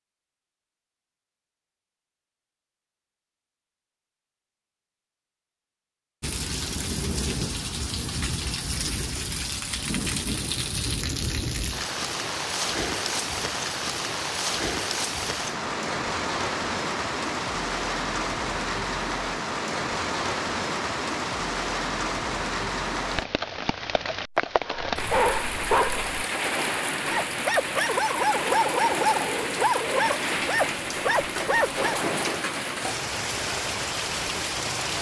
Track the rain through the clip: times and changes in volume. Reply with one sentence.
The rain can be heard from 6.2 to 34.9 s, at a steady volume.